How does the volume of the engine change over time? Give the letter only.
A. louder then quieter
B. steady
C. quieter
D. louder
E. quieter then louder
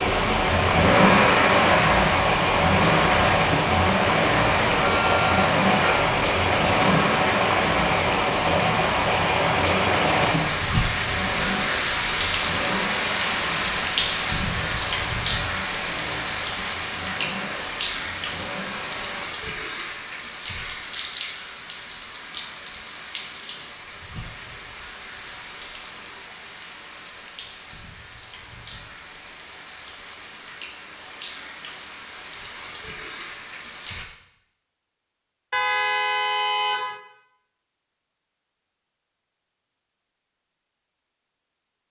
C.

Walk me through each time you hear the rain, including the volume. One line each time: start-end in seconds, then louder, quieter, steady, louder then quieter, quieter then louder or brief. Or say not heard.
0.0-34.0 quieter.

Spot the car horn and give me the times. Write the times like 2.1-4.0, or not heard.
4.8-6.1, 35.5-37.0.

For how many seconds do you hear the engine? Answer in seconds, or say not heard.
19 s.